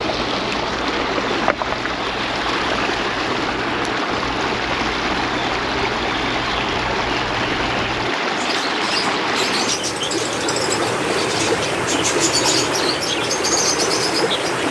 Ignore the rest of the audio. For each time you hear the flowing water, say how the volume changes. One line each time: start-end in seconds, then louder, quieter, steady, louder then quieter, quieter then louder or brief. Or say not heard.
0.0-14.6 steady.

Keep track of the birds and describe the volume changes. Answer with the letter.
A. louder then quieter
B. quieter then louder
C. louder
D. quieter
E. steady
C.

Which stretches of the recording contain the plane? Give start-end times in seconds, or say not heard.
not heard.